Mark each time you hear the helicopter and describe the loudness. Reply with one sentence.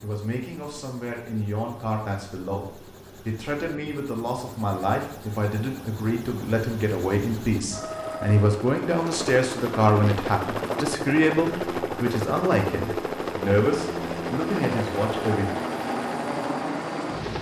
The helicopter can be heard from 0.0 to 17.3 s, getting louder.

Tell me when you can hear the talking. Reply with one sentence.
You can hear the talking from 0.0 to 15.5 s.